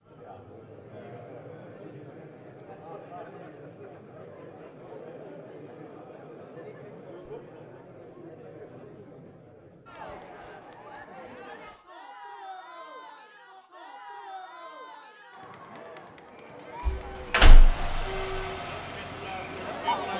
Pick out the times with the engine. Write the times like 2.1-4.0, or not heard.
17.4-20.0.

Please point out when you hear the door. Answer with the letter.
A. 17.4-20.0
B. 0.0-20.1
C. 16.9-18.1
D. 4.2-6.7
C.